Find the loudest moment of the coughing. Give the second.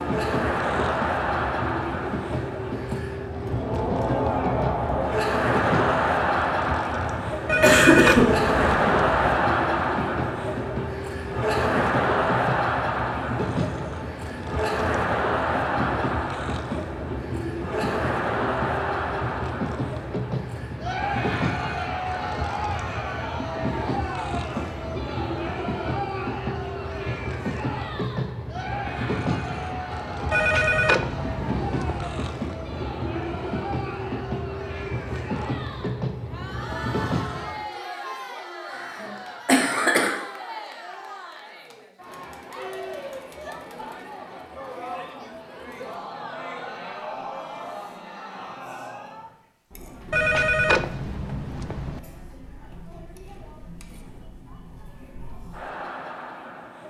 8 s.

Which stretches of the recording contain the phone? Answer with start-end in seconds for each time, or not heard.
7.5-9.2, 30.3-32.1, 50.1-52.0.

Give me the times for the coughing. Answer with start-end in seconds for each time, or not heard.
7.6-8.5, 38.7-40.2.